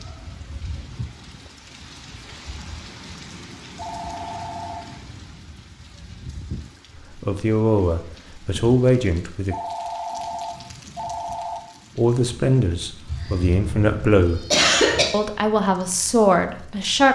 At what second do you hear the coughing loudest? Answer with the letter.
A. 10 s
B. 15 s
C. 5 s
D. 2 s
B.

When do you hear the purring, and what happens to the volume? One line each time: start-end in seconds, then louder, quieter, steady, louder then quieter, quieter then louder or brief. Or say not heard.
not heard.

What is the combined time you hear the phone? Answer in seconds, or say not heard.
3 s.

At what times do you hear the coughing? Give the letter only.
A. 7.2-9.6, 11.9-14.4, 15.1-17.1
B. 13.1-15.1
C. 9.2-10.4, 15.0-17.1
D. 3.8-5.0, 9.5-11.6
B.